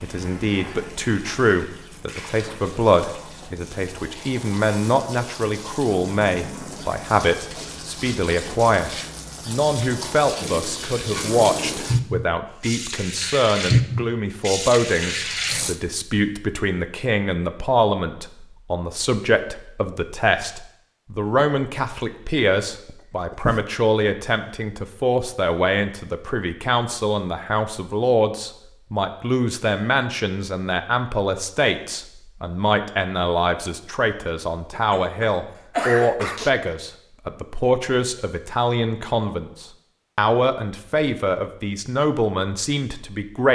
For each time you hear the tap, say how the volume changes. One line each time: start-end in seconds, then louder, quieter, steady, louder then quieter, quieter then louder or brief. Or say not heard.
0.0-15.8 louder.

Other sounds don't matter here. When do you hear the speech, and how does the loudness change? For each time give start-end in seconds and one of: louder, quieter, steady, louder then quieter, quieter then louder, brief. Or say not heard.
0.0-43.5 steady.